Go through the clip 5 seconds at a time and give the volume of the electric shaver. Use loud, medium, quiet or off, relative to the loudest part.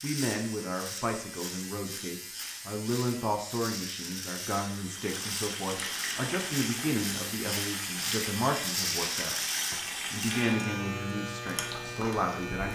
medium, loud, loud.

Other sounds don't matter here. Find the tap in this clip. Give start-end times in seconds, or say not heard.
4.5-12.3.